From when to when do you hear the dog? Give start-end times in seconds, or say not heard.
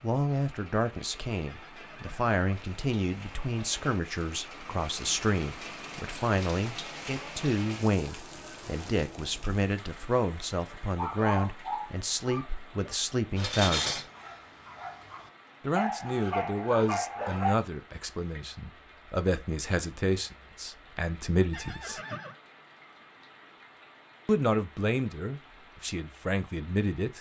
10.7-17.6.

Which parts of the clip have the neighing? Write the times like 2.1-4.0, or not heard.
1.4-2.4, 21.5-22.4.